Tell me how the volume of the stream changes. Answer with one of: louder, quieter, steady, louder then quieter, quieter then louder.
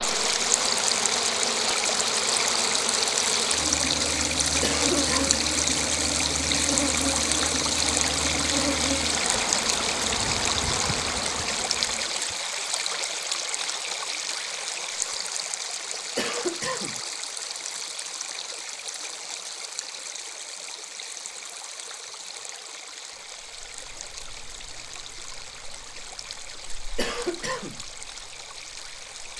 quieter.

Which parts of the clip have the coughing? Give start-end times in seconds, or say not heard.
4.6-5.4, 16.1-17.0, 26.9-27.8.